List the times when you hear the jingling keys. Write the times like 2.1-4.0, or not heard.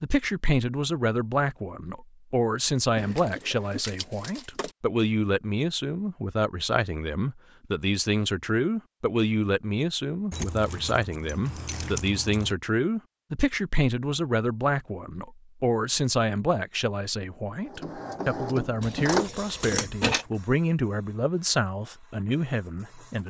3.0-4.8, 10.3-12.6, 18.8-20.2.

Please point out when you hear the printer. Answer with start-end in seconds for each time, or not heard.
17.6-23.2.